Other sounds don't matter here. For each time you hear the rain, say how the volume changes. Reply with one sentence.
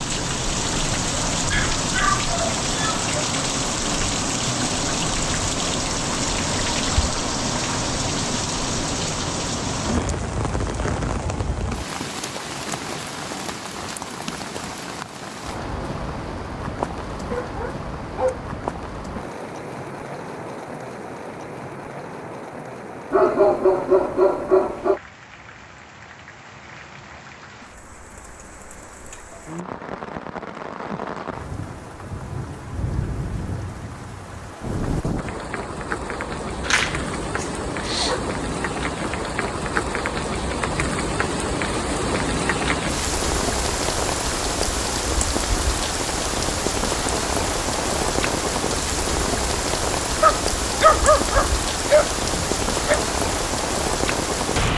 You can hear the rain from 0.0 to 54.7 s, getting quieter then louder.